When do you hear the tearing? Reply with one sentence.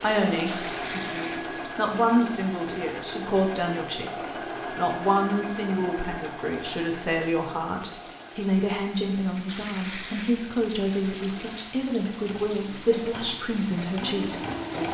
The tearing can be heard from 0.5 to 1.4 s and from 9.4 to 10.4 s.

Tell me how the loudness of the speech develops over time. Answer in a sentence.
The loudness of the speech stays about the same.